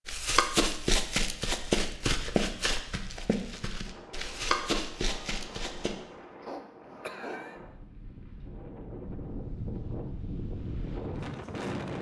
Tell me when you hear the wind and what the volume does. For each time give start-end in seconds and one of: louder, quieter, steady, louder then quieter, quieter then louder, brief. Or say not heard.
3.8-11.9 louder.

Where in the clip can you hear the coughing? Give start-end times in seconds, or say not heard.
6.2-7.6.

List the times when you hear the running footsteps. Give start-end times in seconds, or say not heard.
0.1-6.0.